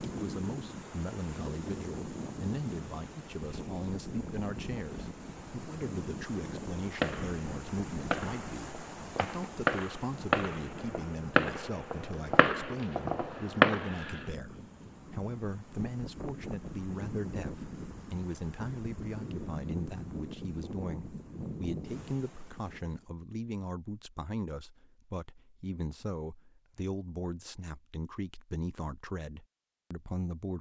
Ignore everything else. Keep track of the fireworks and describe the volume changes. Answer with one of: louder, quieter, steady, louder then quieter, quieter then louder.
louder.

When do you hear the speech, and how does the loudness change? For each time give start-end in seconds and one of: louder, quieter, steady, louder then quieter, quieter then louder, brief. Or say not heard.
0.0-30.5 steady.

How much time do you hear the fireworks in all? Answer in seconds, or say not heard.
7 s.